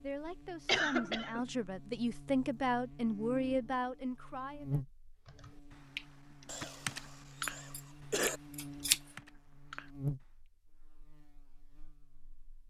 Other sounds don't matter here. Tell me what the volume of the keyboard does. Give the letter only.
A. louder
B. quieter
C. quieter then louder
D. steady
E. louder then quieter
E.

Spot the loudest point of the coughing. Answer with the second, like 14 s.
1 s.